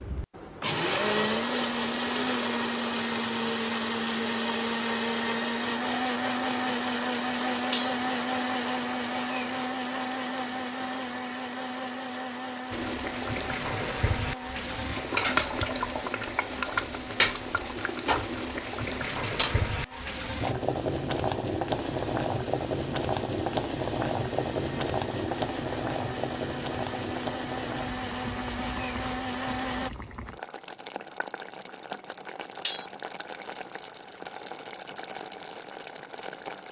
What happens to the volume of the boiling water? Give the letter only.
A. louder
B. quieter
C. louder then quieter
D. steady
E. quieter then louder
B.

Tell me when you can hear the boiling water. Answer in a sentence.
The boiling water can be heard from 12.7 to 36.6 s.